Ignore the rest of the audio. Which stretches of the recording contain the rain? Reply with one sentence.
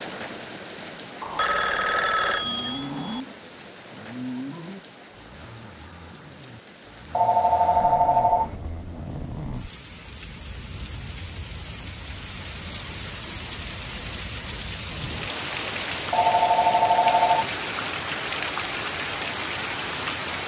The rain can be heard from 0.0 to 20.4 s.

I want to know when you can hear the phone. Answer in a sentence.
The phone can be heard from 1.2 to 3.2 s, from 7.1 to 8.6 s and from 16.1 to 17.6 s.